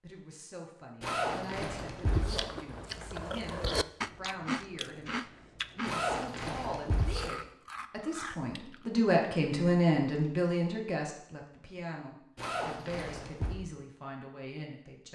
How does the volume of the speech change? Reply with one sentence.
The volume of the speech goes up, then down.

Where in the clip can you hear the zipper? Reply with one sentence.
You can hear the zipper from 1.0 to 2.4 s, from 5.8 to 7.2 s and from 12.3 to 13.6 s.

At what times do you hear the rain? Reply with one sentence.
The rain can't be heard in this clip.